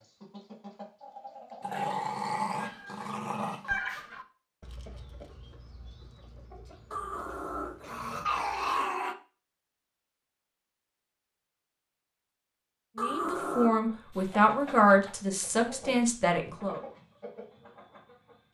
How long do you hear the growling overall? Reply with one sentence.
The growling can be heard for 5 seconds in total.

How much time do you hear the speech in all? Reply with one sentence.
The speech can be heard for 4 seconds in total.